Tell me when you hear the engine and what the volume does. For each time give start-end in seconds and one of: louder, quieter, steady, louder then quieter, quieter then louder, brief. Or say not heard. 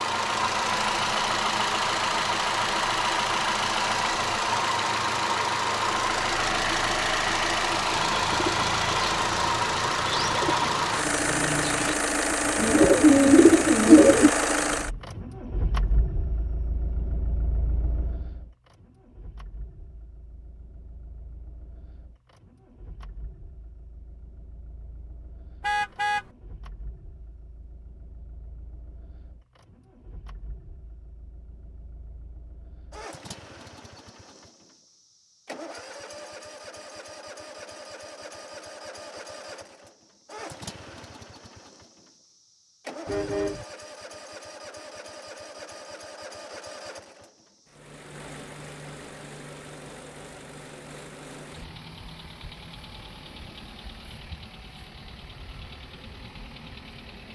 0.0-57.3 quieter then louder.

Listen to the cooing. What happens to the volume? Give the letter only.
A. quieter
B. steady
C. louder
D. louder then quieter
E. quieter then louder
C.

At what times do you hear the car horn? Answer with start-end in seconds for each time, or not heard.
14.7-15.2, 25.6-26.3, 43.0-43.6.